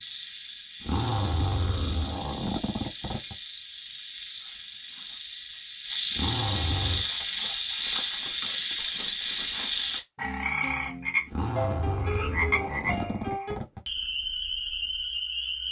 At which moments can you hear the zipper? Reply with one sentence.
The zipper can be heard from 0.8 to 3.4 s, from 6.1 to 7.1 s and from 11.2 to 13.8 s.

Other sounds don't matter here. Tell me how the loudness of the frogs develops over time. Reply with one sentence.
The volume of the frogs goes up.